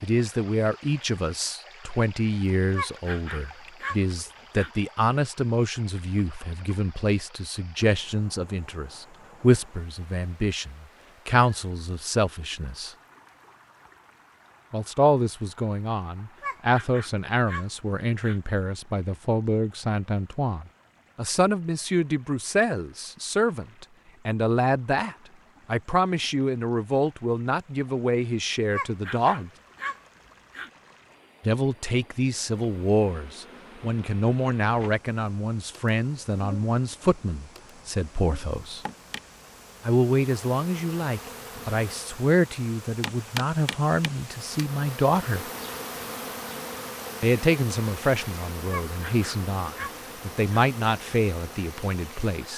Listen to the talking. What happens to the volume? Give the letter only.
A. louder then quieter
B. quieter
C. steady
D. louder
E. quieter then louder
C.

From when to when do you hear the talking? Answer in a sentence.
You can hear the talking from 0.0 to 12.9 s, from 14.7 to 29.5 s, from 31.4 to 38.8 s, from 39.9 to 45.5 s and from 47.2 to 52.5 s.